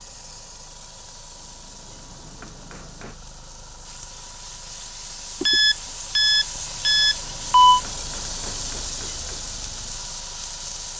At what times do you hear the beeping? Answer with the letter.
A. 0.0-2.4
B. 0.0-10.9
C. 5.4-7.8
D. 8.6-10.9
C.